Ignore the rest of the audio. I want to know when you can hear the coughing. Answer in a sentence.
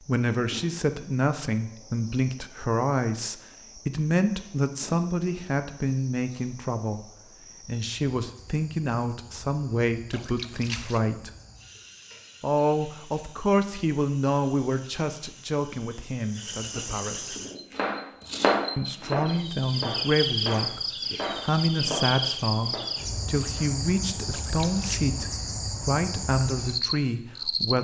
The coughing can't be heard in this clip.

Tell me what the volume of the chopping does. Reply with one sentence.
The volume of the chopping goes up, then down.